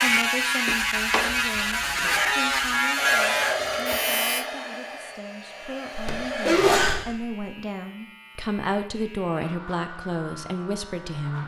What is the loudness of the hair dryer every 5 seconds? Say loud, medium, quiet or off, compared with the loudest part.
loud, medium, off.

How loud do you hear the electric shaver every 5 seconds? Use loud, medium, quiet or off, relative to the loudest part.
loud, quiet, quiet.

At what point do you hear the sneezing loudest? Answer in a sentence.
The volume of the sneezing peaks at 7 seconds.